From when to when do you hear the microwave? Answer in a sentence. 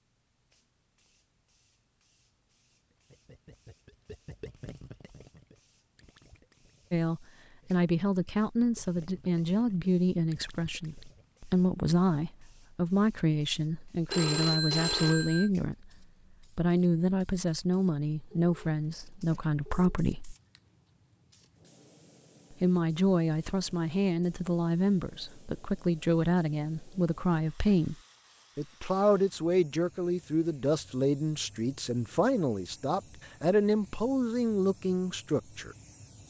You can't hear the microwave here.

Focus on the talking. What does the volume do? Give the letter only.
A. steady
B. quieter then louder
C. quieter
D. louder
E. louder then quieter
A.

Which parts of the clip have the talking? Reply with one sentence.
The talking can be heard from 6.9 to 20.4 s, from 22.5 to 27.9 s and from 28.6 to 35.8 s.